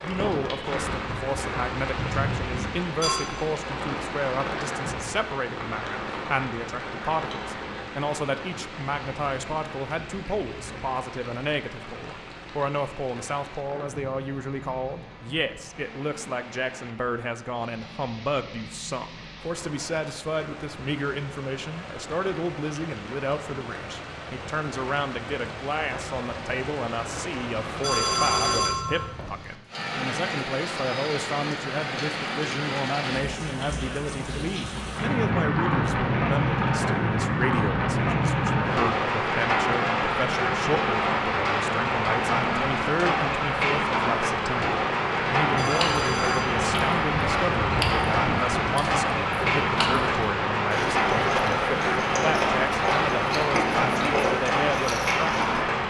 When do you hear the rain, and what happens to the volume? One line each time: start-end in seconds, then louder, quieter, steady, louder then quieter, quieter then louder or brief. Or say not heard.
0.0-55.8 quieter then louder.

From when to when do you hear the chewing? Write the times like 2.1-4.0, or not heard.
45.6-55.6.